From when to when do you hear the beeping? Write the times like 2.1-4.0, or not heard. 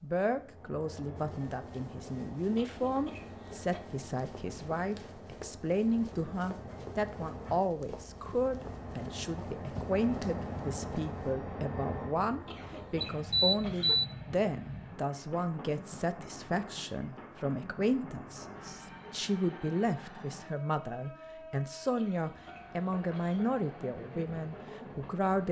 13.0-14.1.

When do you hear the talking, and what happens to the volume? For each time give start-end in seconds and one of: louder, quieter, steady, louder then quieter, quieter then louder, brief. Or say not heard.
0.0-25.4 steady.